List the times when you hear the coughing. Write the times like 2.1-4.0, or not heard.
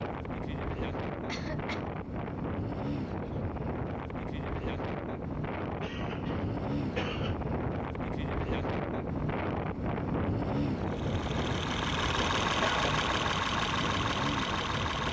1.2-1.9, 5.8-7.3, 12.4-13.0.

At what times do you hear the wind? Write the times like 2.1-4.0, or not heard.
0.0-15.0.